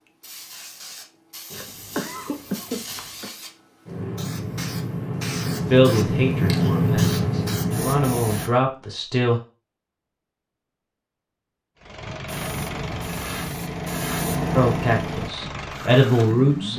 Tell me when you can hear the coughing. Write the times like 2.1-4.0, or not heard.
1.5-3.3.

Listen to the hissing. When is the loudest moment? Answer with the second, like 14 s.
7 s.